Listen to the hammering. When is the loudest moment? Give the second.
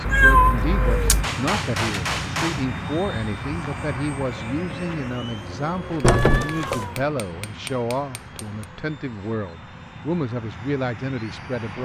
2 s.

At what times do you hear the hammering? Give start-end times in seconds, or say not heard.
1.2-2.6, 6.0-8.7.